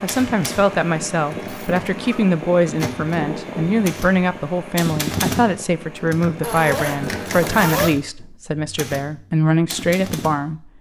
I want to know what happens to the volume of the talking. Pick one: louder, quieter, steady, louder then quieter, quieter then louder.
steady.